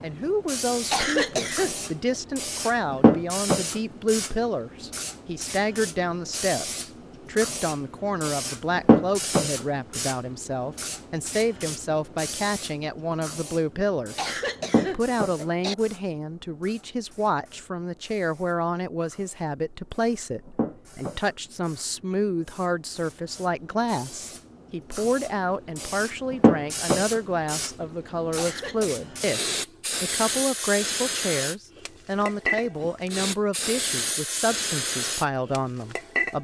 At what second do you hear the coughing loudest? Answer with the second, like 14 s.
1 s.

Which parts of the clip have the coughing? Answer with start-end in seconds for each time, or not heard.
0.9-1.9, 14.2-15.8, 28.4-28.9.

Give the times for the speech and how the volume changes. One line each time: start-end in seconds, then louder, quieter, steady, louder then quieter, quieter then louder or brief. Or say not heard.
0.0-36.3 steady.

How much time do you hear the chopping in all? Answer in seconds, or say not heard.
not heard.